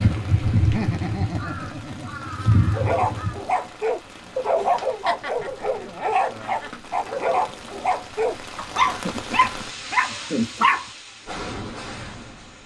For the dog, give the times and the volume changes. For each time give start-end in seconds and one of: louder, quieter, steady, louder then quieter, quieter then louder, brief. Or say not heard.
2.7-10.8 steady.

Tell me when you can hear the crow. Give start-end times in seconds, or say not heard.
0.0-3.4.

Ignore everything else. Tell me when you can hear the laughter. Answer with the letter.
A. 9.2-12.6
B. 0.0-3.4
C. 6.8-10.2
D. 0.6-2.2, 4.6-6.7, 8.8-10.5
D.